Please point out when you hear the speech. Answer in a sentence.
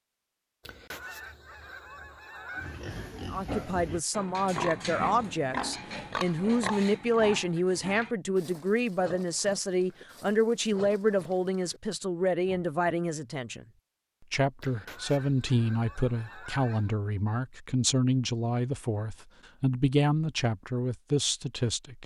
You can hear the speech from 3.1 to 13.7 s and from 14.3 to 22.0 s.